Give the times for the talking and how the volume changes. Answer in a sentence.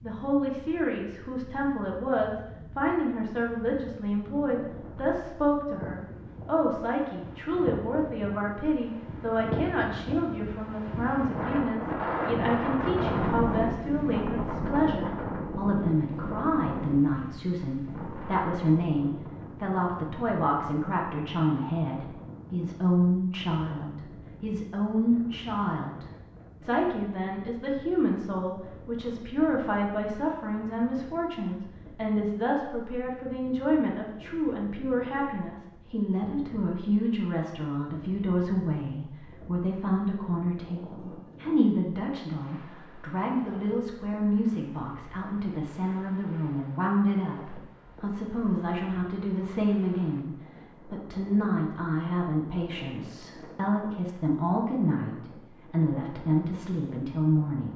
You can hear the talking from 0.0 to 57.7 s, at a steady volume.